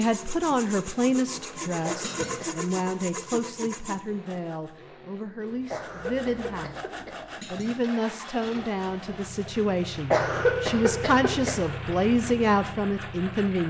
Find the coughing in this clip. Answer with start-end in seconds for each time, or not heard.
1.9-2.6, 5.7-7.1, 10.1-11.8.